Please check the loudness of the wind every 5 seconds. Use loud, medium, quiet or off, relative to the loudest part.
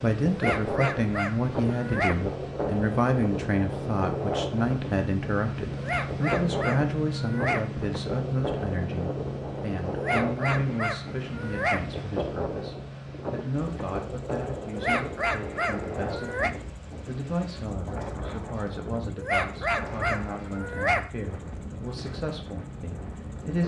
loud, loud, loud, medium, medium.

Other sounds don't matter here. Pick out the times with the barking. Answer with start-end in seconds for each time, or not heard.
0.3-2.2, 5.8-7.7, 9.9-11.8, 14.7-16.5, 19.1-21.1.